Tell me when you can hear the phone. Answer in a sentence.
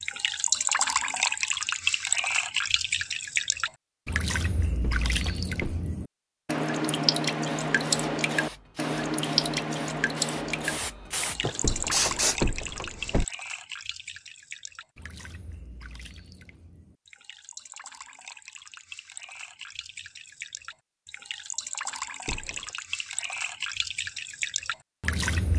You can't hear the phone here.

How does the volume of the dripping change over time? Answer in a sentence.
The volume of the dripping goes down, then up.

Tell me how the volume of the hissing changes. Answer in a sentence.
The loudness of the hissing goes up.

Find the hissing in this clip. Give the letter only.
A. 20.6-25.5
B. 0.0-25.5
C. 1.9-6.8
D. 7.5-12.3
D.